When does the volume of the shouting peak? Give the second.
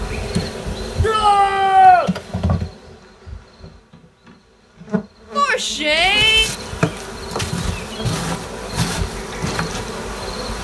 2 s.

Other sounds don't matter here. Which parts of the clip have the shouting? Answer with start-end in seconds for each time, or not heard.
1.0-2.1, 5.3-6.5.